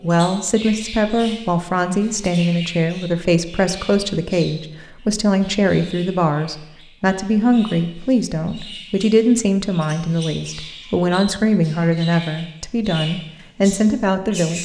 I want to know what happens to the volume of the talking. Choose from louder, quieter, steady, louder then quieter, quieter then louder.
steady.